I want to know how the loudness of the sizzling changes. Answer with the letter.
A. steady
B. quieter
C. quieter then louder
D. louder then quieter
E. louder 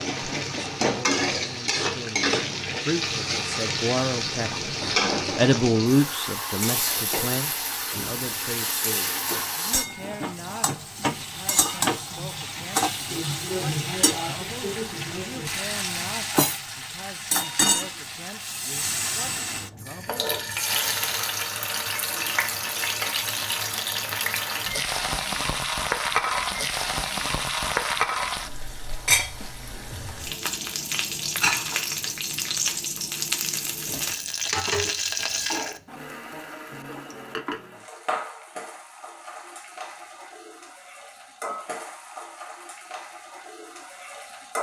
B.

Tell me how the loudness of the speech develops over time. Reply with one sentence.
The volume of the speech goes up, then down.